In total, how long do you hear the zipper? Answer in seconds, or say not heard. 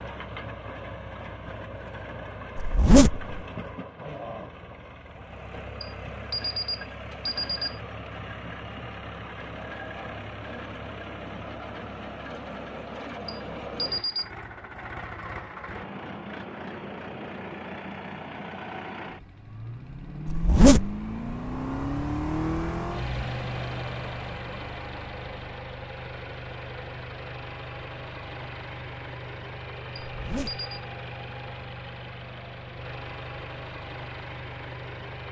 2 s.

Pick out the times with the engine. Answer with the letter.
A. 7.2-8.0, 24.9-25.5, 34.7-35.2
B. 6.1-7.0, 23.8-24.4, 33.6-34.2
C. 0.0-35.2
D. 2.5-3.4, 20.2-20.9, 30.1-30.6
C.